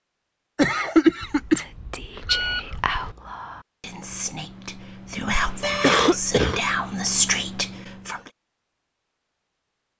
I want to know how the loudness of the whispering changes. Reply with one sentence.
The loudness of the whispering goes down, then up.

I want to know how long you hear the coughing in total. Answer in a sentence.
The coughing can be heard for 2 seconds in total.